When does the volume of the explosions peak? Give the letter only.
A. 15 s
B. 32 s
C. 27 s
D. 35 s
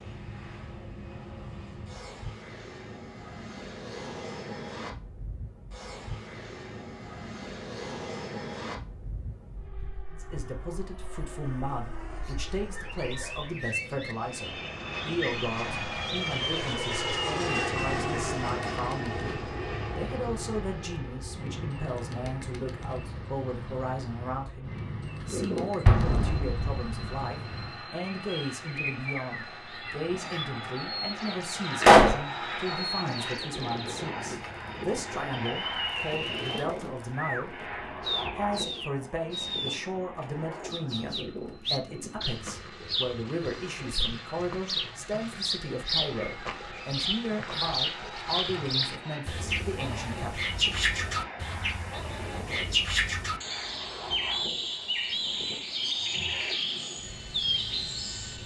B.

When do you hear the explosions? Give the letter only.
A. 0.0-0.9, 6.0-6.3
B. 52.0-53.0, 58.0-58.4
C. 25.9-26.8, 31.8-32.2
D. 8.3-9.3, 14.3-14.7
C.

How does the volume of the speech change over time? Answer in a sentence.
The loudness of the speech stays about the same.